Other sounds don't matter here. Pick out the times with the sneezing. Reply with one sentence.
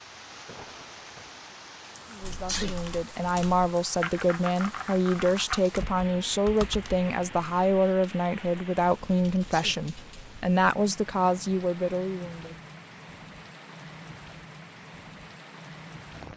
You can hear the sneezing from 2.3 to 2.8 s and from 9.3 to 9.8 s.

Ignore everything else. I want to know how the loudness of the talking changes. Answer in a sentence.
The loudness of the talking stays about the same.